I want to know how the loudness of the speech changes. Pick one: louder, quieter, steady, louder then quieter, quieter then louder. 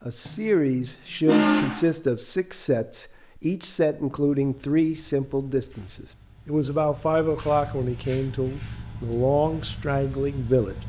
steady.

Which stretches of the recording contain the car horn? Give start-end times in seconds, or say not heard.
0.2-1.9.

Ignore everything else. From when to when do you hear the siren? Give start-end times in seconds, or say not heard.
not heard.